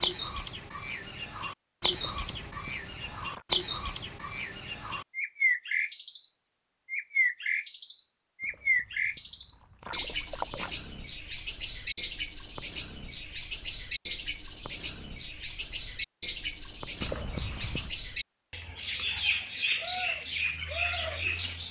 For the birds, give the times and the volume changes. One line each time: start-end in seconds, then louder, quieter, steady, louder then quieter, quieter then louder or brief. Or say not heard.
0.0-21.6 steady.